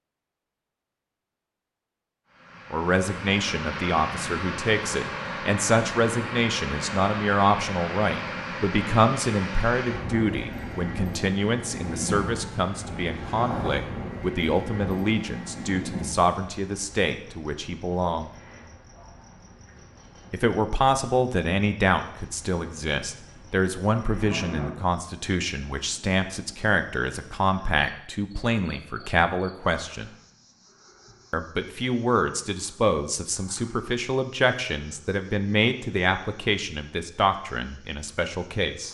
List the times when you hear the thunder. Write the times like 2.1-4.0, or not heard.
not heard.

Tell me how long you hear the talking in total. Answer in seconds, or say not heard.
33 s.